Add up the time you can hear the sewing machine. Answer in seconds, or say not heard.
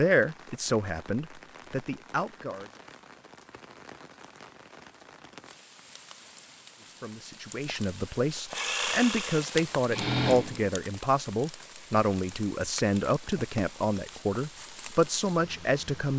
2 s.